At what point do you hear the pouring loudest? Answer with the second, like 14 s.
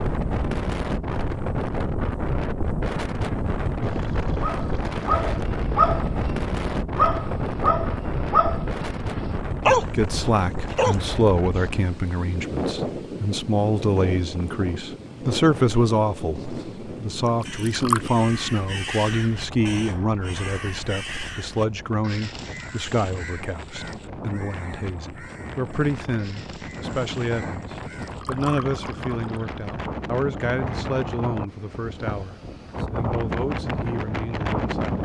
18 s.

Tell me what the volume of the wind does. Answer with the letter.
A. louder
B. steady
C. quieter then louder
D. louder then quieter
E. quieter
C.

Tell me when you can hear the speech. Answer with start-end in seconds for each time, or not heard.
9.9-35.0.